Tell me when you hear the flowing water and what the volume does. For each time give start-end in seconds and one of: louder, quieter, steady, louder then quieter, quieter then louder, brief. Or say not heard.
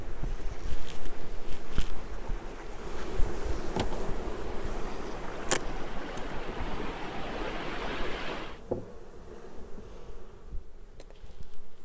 0.0-8.6 louder.